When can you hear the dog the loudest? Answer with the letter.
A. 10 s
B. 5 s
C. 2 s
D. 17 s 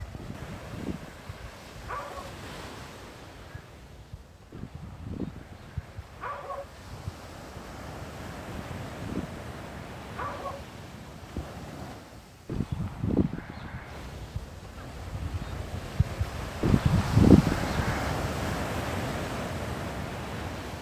D.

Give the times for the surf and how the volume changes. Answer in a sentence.
You can hear the surf from 0.0 to 20.7 s, getting louder.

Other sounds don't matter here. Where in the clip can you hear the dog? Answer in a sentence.
The dog can be heard from 0.1 to 2.3 s, from 4.5 to 6.7 s, from 8.4 to 10.6 s, from 12.4 to 14.1 s and from 16.6 to 18.1 s.